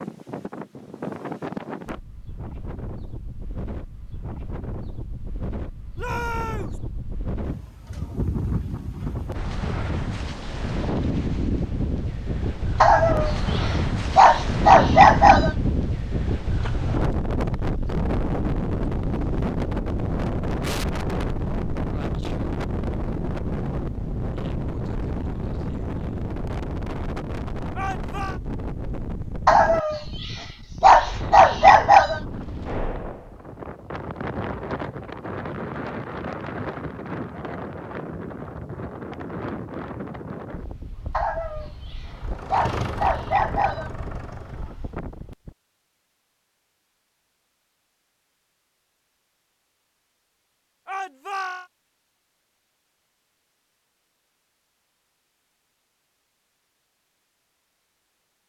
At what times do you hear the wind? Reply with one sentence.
The wind can be heard from 0.0 to 45.5 s.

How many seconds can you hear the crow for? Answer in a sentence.
You can't hear the crow here.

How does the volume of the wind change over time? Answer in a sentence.
The loudness of the wind goes up, then down.